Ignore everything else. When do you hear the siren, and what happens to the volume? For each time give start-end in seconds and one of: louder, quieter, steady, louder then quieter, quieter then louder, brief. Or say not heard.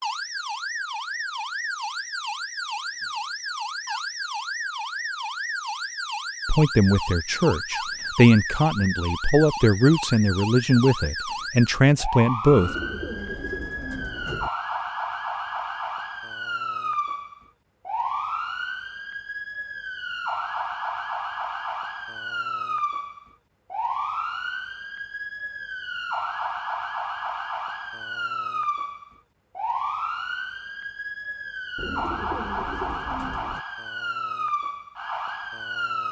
0.0-36.0 steady.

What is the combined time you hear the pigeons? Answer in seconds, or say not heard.
4 s.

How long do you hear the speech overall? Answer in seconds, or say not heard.
6 s.